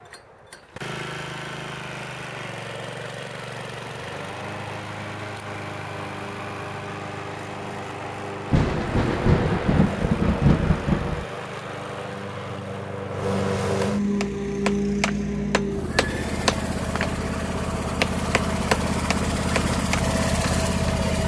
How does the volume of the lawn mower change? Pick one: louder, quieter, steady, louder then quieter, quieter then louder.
louder.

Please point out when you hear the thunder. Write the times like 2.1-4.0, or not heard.
8.5-11.2.